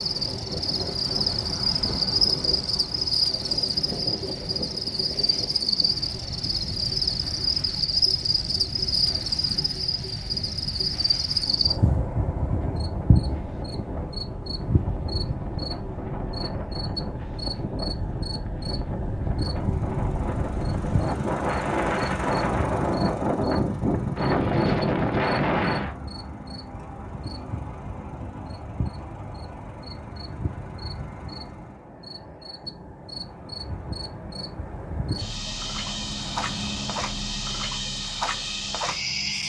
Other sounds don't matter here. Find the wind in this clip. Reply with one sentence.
The wind can be heard from 0.0 to 25.9 s.